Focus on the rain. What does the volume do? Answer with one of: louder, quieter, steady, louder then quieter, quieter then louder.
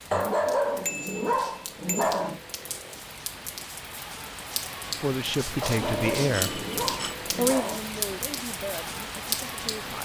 louder.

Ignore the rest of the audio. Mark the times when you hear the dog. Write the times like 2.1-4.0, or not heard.
0.1-2.4, 5.6-7.8.